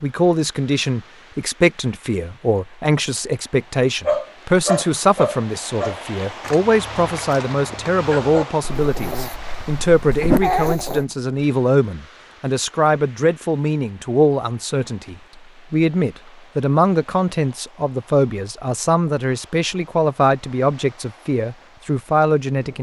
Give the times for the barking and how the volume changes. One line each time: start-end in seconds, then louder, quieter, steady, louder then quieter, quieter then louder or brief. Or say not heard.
4.0-11.1 quieter then louder.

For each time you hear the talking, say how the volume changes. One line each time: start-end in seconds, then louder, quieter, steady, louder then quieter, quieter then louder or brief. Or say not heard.
0.0-22.7 steady.